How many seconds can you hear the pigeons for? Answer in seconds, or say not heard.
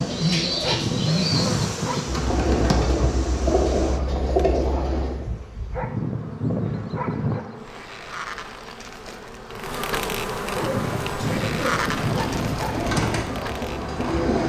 9 s.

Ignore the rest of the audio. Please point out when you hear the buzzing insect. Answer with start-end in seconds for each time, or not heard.
0.0-14.4.